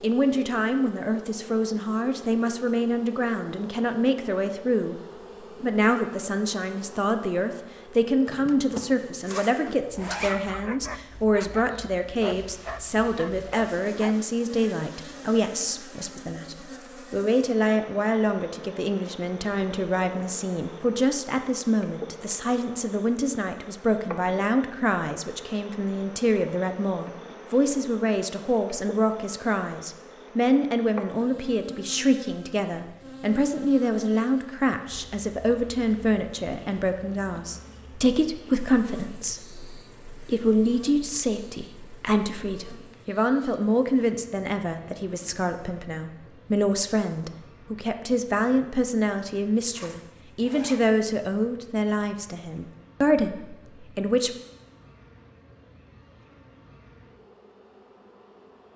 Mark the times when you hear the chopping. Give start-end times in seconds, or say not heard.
not heard.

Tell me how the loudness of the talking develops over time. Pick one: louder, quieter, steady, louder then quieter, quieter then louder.
steady.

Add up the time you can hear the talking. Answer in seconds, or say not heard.
54 s.